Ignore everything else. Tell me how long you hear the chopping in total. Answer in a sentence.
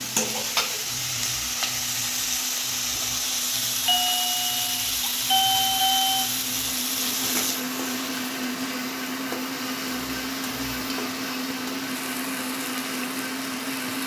The chopping can't be heard in this clip.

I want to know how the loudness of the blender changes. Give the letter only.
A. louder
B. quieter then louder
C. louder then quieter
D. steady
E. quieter
A.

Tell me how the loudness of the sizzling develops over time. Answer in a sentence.
The volume of the sizzling goes down.